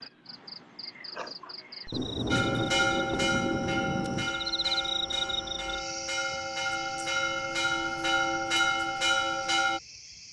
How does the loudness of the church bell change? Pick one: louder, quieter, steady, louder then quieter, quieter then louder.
quieter then louder.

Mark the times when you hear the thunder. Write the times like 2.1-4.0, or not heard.
1.9-4.4.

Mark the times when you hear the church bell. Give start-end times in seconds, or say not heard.
2.3-9.8.